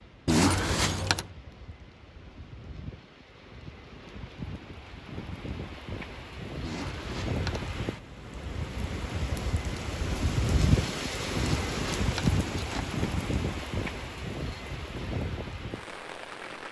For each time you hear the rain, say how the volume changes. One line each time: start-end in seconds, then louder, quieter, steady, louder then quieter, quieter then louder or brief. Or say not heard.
0.0-16.6 louder then quieter.